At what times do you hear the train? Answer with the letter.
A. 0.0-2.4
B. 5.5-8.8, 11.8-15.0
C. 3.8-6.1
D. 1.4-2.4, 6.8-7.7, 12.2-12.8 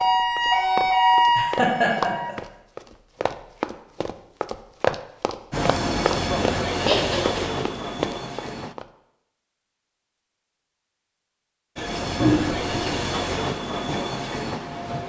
B.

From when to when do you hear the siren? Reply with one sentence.
The siren can be heard from 0.0 to 2.4 s.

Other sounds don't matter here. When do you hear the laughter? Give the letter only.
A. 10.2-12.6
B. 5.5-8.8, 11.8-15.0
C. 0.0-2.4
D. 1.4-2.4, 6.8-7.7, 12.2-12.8
D.